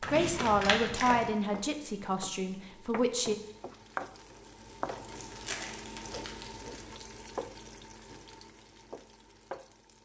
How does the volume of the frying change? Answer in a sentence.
The loudness of the frying goes up, then down.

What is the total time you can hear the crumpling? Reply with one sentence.
You can hear the crumpling for 3 seconds altogether.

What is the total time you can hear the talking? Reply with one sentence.
The talking can be heard for 3 seconds in total.